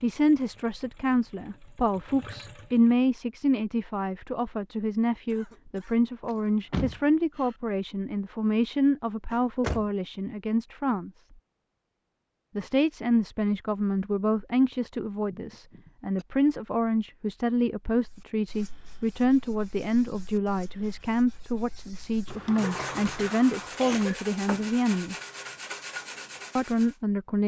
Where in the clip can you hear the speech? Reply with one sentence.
You can hear the speech from 0.0 to 11.1 s, from 12.6 to 25.1 s and from 26.6 to 27.4 s.